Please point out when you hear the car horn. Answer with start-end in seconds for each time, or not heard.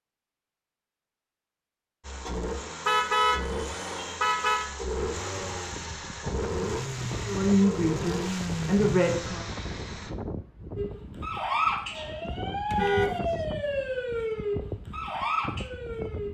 2.9-4.7, 12.7-13.2.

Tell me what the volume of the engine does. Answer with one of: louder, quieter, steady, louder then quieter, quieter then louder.
steady.